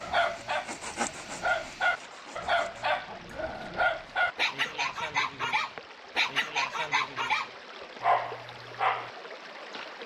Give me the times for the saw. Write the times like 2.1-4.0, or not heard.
0.1-2.9.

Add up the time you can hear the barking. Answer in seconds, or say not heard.
9 s.